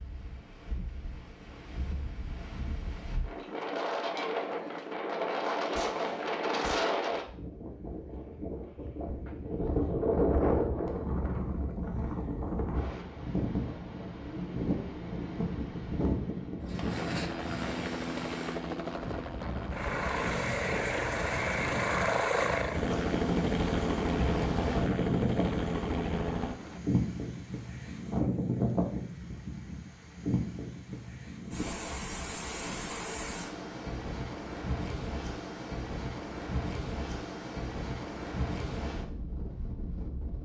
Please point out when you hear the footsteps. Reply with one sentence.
You can't hear the footsteps here.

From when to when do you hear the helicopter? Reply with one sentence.
The helicopter can be heard from 16.9 to 26.8 s.